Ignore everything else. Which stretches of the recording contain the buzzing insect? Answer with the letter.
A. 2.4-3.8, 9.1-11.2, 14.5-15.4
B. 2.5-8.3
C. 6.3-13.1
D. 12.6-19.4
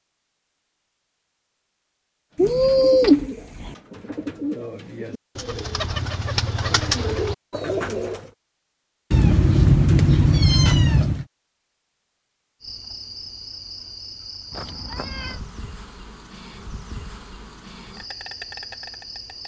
D.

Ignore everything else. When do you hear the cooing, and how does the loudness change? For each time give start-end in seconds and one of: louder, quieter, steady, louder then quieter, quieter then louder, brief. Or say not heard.
2.5-8.3 louder.